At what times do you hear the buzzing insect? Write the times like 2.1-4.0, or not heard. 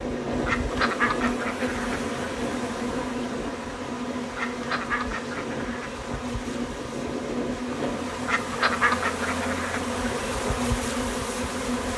0.0-11.9.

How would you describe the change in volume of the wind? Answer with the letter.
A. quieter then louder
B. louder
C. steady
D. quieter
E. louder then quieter
A.